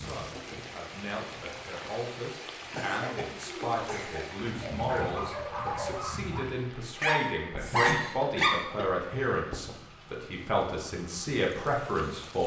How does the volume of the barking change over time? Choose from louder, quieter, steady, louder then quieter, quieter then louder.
louder.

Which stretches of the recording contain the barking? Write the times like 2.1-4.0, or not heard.
2.8-8.6.